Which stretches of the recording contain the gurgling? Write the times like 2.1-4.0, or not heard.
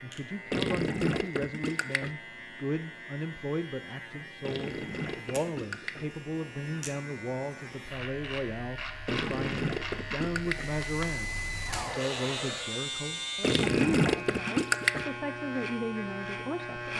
0.5-2.1, 4.4-6.0, 9.1-10.7, 13.4-15.1.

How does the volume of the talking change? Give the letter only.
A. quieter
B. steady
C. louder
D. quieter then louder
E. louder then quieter
B.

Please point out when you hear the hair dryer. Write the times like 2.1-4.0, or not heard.
10.4-12.8.